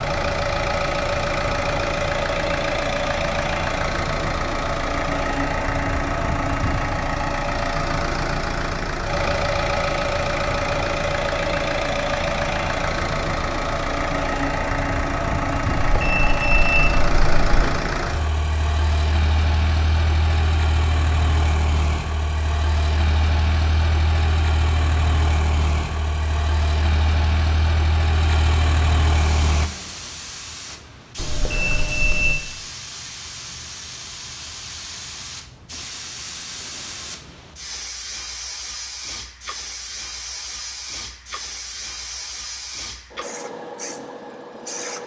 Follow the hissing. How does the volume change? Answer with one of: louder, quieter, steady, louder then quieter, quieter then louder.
steady.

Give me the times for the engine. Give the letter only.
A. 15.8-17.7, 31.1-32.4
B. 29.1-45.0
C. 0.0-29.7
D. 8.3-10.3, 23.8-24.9
C.